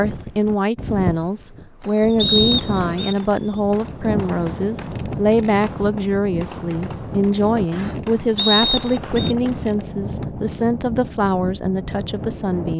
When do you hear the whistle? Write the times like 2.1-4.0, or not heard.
2.1-3.1, 8.3-9.3.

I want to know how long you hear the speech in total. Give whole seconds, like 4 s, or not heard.
13 s.